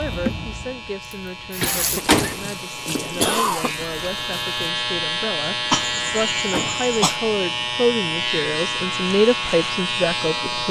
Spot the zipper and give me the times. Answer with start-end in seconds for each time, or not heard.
not heard.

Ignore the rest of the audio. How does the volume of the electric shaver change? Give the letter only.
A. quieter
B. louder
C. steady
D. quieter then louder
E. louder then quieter
B.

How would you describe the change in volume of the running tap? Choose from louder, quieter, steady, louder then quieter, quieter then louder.
louder then quieter.